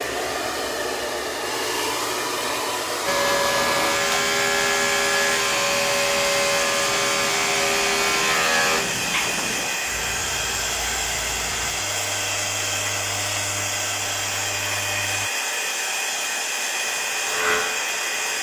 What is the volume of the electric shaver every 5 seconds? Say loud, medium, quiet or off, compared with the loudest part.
loud, loud, quiet, medium.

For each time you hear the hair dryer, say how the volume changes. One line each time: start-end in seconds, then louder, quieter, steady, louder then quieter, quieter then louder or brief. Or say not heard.
0.0-18.3 steady.